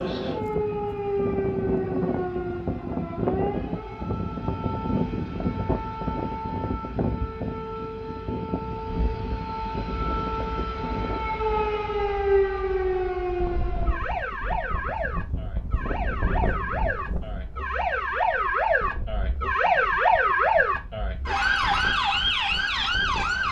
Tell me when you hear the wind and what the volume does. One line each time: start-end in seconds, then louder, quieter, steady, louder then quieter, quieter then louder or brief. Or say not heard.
0.0-23.4 quieter.